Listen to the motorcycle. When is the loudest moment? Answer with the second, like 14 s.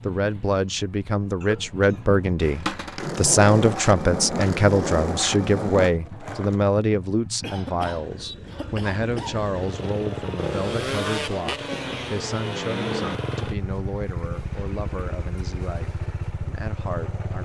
11 s.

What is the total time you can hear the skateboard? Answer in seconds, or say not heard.
4 s.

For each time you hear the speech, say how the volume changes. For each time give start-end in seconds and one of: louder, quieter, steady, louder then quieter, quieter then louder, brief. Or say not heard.
0.0-17.4 quieter.